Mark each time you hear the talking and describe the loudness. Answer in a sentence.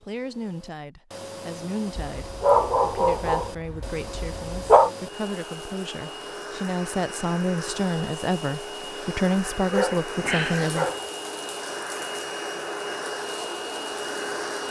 You can hear the talking from 0.0 to 10.9 s, getting louder.